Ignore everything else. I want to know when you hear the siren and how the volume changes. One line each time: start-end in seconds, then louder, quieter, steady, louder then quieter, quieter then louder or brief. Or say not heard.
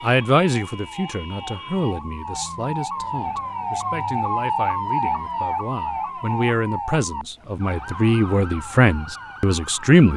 0.0-10.1 louder then quieter.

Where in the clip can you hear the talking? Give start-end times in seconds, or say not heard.
0.0-10.1.